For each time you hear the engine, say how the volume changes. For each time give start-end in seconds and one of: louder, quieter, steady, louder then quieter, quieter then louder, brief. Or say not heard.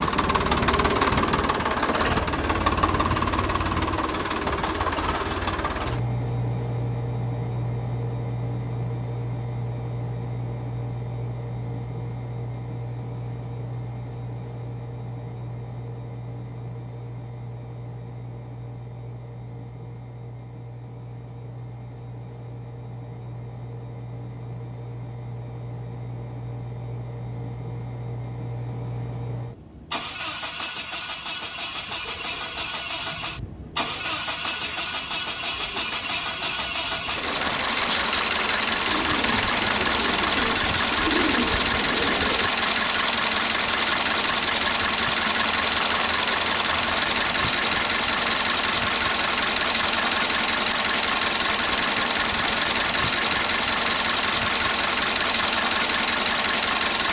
0.0-57.0 quieter then louder.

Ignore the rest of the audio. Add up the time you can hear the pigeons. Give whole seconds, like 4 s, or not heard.
11 s.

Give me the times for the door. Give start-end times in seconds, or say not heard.
not heard.